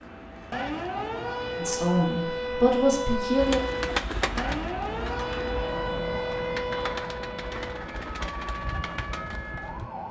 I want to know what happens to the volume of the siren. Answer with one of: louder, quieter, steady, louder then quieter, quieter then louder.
quieter.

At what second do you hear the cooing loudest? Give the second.
4 s.